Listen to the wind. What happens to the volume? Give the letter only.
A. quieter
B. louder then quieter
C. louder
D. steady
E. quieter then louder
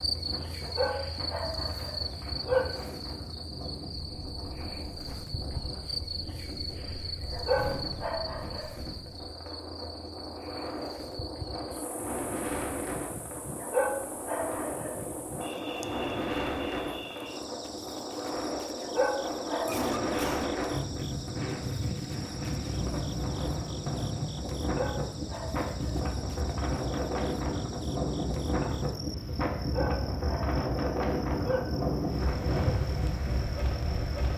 C.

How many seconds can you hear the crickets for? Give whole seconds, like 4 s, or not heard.
34 s.